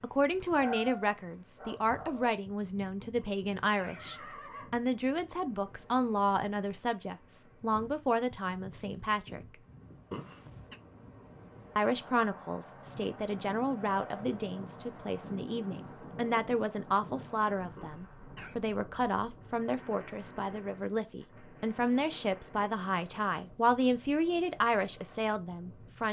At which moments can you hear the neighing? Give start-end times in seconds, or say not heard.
3.1-4.8, 10.1-10.8, 17.8-18.6.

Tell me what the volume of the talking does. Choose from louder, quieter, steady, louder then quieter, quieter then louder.
steady.